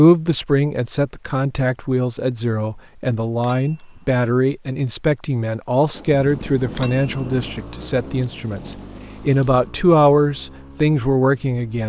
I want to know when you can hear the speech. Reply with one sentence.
You can hear the speech from 0.0 to 11.8 s.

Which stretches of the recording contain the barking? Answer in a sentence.
You can't hear the barking here.